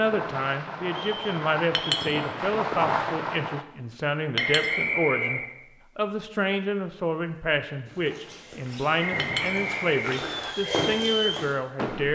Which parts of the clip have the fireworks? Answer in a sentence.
You can hear the fireworks from 0.0 to 3.6 s and from 9.0 to 12.1 s.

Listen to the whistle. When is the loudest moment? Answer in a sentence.
The loudest moment of the whistle is at 5 seconds.